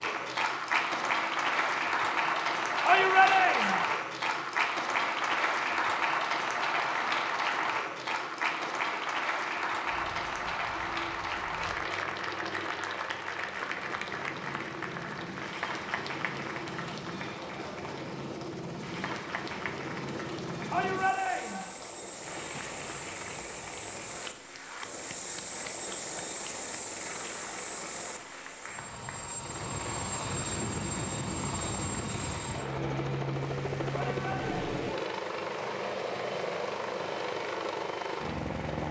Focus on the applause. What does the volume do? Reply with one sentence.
The volume of the applause goes down.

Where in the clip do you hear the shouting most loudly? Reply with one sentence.
The loudest moment of the shouting is at 3 seconds.